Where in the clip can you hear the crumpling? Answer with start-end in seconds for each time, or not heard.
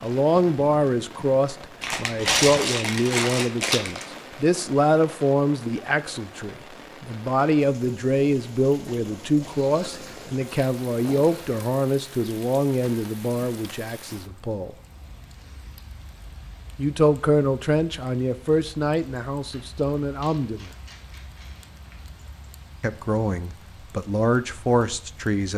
1.8-4.0, 9.4-11.7, 19.5-22.0.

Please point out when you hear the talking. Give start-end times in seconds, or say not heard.
0.0-14.8, 16.8-20.7, 22.8-25.5.